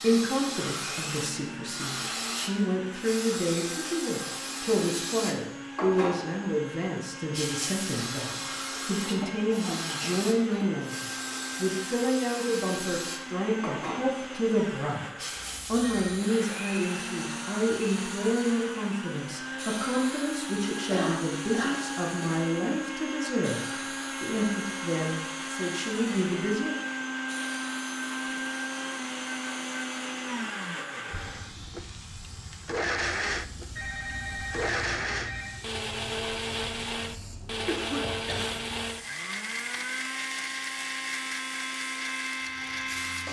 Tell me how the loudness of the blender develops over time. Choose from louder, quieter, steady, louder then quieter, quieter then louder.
louder.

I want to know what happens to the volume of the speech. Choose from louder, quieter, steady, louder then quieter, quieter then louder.
steady.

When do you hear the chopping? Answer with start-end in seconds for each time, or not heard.
not heard.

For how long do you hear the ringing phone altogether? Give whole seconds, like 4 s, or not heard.
3 s.